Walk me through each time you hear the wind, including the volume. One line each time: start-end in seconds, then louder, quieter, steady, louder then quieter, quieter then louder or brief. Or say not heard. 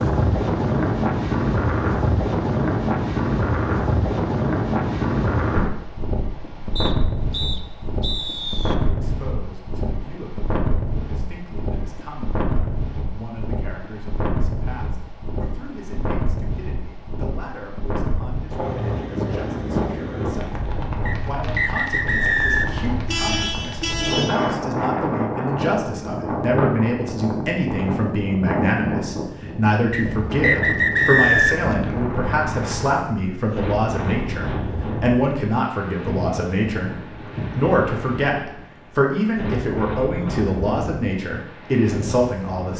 0.0-42.7 quieter.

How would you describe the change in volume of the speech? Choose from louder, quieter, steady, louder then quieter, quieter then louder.
louder.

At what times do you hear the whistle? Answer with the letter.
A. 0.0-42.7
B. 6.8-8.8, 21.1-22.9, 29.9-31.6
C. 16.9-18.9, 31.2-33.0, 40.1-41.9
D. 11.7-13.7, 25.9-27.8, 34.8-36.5
B.